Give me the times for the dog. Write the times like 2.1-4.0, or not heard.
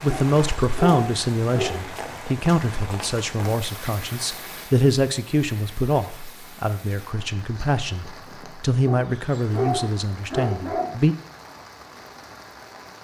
0.1-1.9, 8.8-10.9.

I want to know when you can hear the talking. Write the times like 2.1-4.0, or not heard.
0.0-11.2.